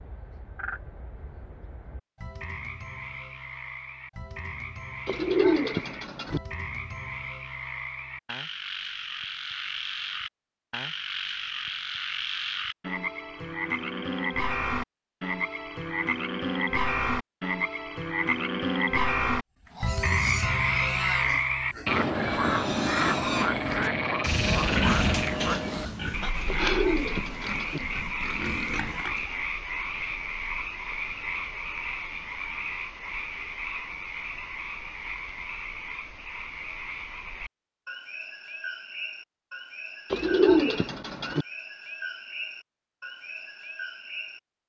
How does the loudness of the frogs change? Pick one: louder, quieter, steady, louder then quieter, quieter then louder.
louder then quieter.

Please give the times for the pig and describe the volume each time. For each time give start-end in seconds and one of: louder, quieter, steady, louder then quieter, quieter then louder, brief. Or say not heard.
19.6-29.4 louder then quieter.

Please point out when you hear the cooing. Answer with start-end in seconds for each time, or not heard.
5.0-6.4, 26.4-27.8, 40.1-41.5.